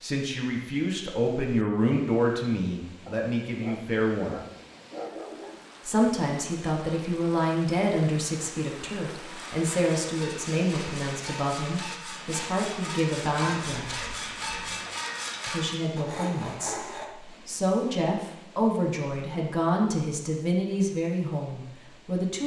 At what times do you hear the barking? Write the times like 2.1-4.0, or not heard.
3.0-5.7, 13.3-14.9.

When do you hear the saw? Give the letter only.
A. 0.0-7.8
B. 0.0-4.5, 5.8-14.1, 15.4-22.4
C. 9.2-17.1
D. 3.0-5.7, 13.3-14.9
C.